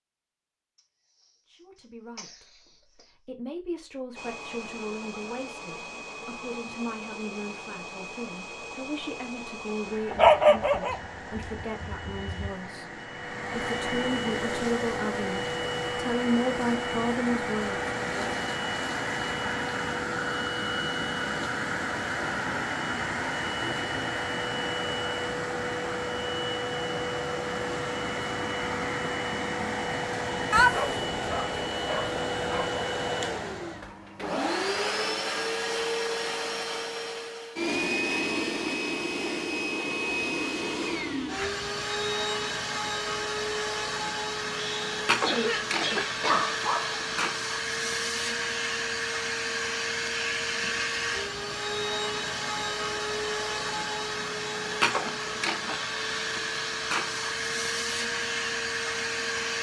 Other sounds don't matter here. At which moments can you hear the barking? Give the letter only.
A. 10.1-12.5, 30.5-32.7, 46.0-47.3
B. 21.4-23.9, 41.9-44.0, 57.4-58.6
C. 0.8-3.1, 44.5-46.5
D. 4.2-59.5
A.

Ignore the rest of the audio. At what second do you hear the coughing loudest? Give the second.
45 s.